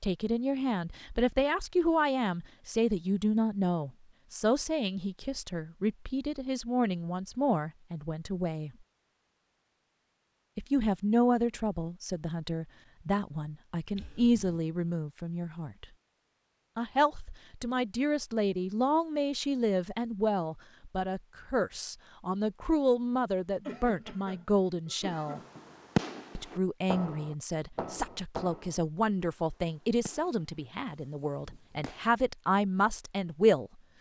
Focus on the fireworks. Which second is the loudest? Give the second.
26 s.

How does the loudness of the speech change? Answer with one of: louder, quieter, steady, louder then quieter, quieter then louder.
steady.